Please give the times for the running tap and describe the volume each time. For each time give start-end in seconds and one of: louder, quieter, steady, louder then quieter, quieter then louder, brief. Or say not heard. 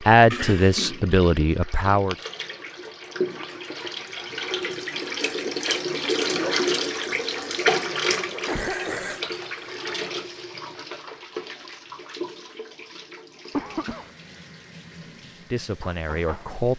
0.0-16.7 louder then quieter.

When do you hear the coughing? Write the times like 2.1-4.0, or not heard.
0.3-1.1, 8.4-9.2, 13.5-14.1.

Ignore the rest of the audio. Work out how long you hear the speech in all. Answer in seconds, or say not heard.
3 s.